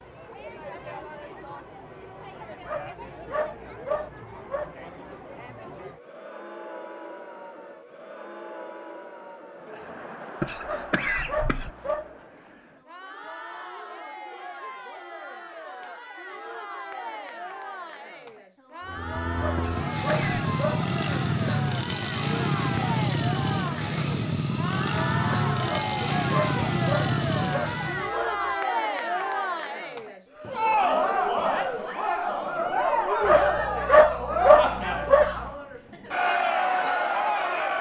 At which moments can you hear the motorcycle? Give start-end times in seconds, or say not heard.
18.9-28.1.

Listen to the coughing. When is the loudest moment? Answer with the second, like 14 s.
11 s.